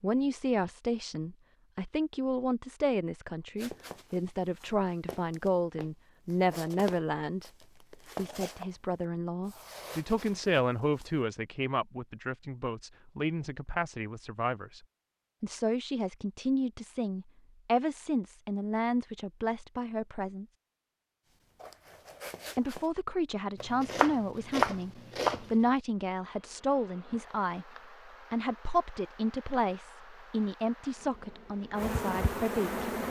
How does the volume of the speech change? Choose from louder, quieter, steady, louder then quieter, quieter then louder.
steady.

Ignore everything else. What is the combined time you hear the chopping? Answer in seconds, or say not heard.
2 s.